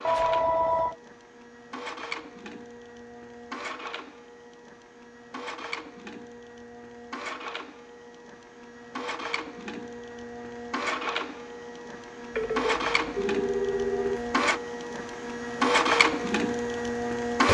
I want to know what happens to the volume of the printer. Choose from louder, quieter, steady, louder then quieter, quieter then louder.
louder.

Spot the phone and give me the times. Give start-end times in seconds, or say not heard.
0.0-0.9, 12.3-14.3.